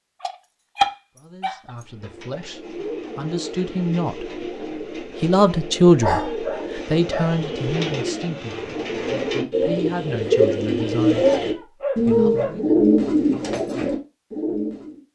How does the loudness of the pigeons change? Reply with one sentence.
The volume of the pigeons goes up.